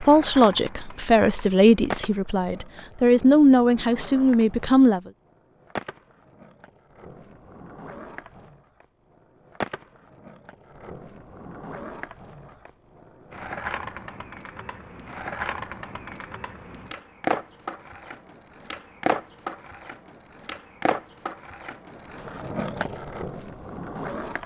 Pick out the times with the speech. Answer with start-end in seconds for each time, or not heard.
0.0-5.1.